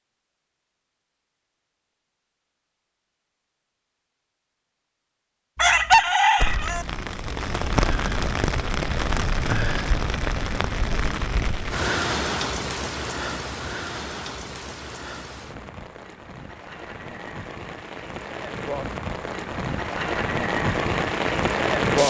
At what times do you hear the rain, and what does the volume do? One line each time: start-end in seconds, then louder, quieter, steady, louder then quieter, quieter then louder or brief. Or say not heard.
6.3-22.0 quieter then louder.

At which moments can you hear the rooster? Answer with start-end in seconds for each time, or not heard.
5.5-6.8.